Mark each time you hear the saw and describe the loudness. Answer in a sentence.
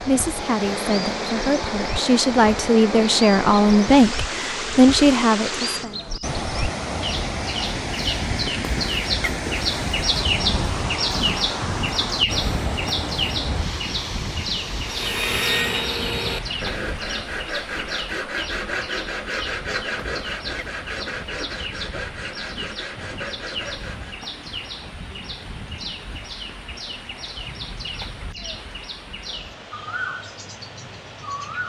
You can hear the saw from 14.8 to 24.3 s, getting quieter.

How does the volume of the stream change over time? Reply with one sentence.
The loudness of the stream goes down.